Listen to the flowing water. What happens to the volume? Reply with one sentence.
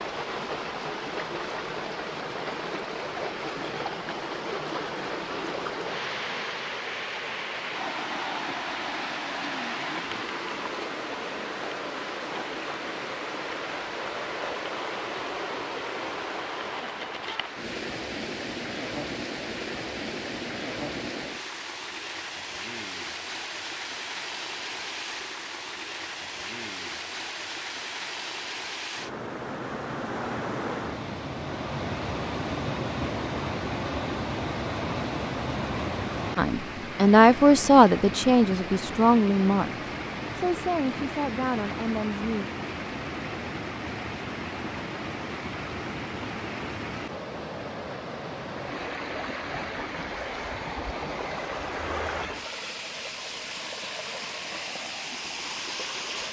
The loudness of the flowing water stays about the same.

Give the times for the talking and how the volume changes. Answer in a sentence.
You can hear the talking from 36.4 to 42.5 s, getting quieter.